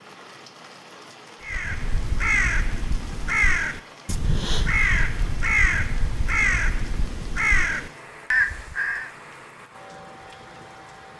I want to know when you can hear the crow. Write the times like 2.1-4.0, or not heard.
1.4-9.1.